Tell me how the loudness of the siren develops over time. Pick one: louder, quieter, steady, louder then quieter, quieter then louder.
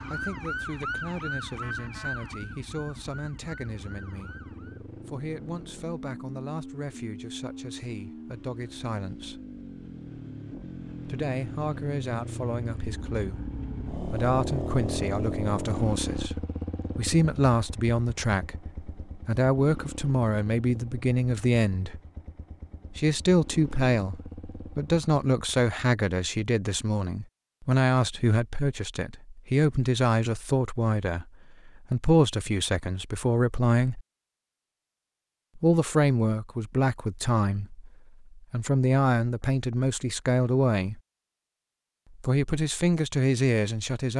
quieter.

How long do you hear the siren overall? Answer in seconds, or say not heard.
5 s.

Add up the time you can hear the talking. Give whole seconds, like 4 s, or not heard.
39 s.